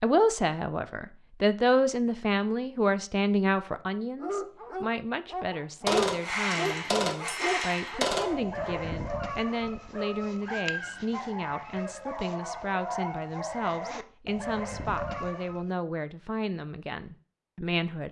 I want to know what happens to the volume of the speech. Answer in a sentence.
The loudness of the speech goes down.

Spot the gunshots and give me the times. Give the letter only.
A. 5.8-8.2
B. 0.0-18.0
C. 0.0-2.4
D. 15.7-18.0
A.